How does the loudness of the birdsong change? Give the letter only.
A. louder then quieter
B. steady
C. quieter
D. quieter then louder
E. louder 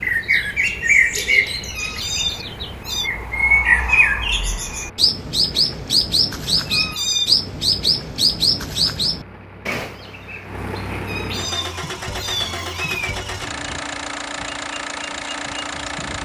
C.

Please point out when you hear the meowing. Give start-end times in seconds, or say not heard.
1.7-3.1, 6.7-7.3, 11.0-13.2.